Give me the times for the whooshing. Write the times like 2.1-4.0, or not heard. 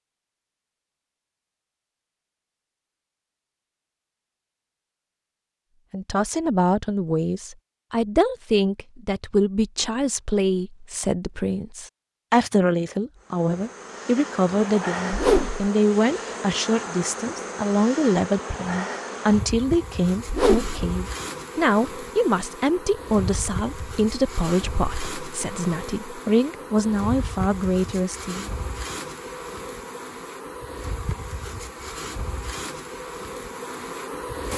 15.1-15.7, 20.2-20.8.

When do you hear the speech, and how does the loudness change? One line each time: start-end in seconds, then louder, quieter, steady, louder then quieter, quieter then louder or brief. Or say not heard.
5.9-28.5 steady.